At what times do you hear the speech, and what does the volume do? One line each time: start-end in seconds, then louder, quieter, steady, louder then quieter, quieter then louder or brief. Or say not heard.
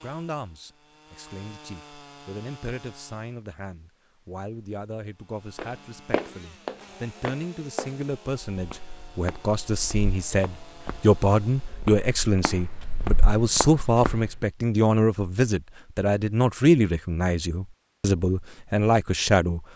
0.0-19.6 louder.